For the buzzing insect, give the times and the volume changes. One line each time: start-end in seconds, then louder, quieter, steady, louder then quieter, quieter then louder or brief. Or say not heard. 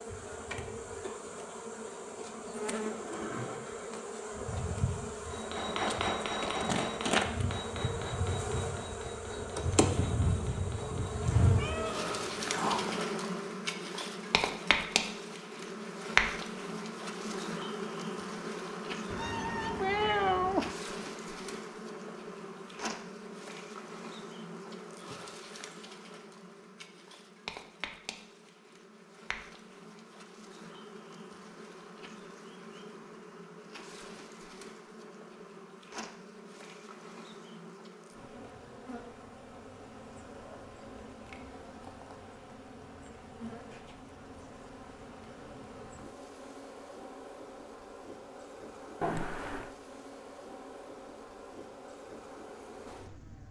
0.0-53.4 quieter.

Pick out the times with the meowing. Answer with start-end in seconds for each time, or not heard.
11.4-13.0, 19.1-20.8, 49.0-49.7.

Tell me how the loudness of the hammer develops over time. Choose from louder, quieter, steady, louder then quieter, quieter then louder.
quieter.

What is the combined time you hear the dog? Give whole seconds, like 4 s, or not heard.
not heard.